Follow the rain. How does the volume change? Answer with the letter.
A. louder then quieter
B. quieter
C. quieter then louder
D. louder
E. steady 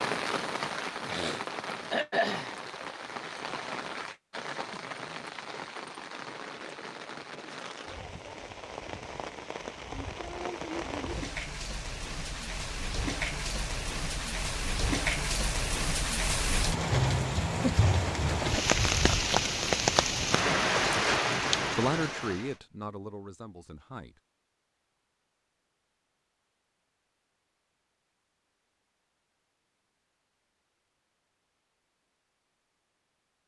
C.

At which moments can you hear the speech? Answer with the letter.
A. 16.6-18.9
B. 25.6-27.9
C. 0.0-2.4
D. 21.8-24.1
D.